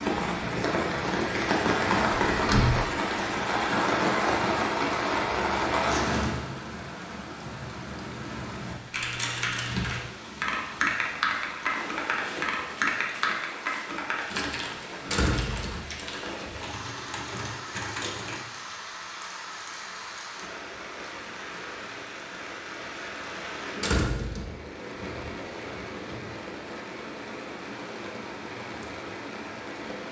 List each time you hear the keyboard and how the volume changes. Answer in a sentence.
The keyboard can be heard from 8.9 to 18.4 s, getting quieter.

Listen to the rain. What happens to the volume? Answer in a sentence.
The volume of the rain goes down.